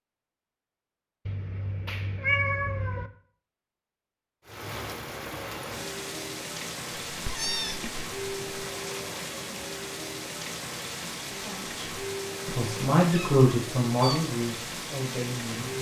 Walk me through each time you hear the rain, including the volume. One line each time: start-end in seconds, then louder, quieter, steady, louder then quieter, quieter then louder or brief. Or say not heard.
4.5-15.7 steady.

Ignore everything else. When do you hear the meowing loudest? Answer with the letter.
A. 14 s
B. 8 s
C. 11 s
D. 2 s
D.